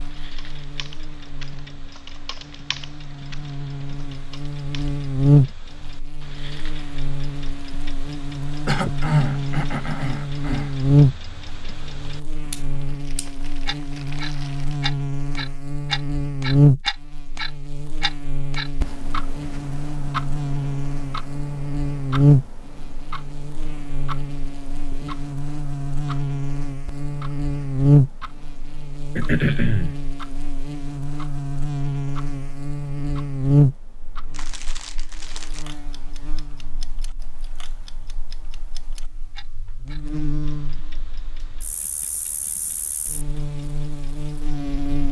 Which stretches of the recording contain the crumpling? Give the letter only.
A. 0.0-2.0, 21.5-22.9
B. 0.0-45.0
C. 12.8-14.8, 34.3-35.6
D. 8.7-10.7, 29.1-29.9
C.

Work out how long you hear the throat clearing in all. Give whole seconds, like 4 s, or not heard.
3 s.